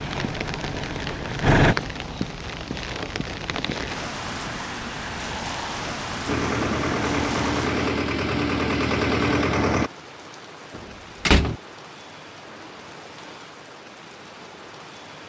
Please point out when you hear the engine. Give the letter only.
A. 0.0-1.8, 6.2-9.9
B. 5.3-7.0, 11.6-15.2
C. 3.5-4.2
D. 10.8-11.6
A.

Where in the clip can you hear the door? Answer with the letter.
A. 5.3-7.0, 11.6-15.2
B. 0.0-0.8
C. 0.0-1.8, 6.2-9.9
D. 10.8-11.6
D.